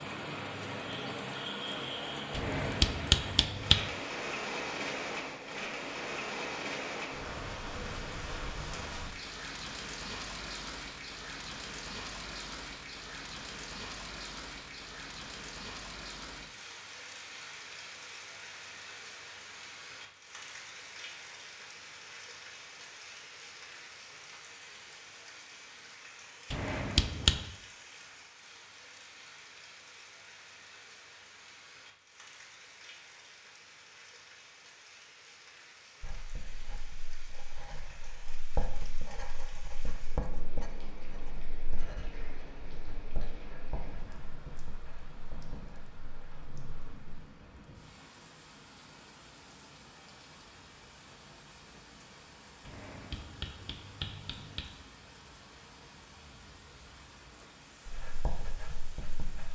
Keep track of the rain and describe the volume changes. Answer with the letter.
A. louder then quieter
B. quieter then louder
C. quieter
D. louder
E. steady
C.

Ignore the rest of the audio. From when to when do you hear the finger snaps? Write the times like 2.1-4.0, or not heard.
2.3-3.8, 26.5-27.4, 52.6-54.6.